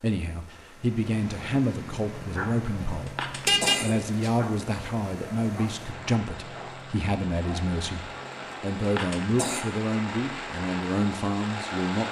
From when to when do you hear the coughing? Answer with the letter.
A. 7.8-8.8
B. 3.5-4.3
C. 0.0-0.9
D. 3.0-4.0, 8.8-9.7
D.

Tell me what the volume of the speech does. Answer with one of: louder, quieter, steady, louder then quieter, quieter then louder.
steady.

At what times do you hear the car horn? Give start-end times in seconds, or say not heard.
3.5-4.3.